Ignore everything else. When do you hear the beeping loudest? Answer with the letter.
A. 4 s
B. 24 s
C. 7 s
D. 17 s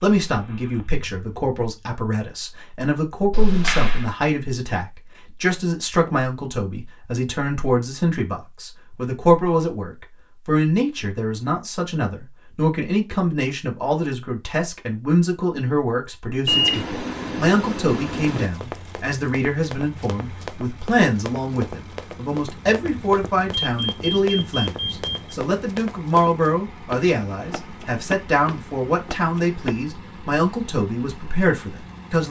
D.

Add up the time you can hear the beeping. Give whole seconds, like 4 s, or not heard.
6 s.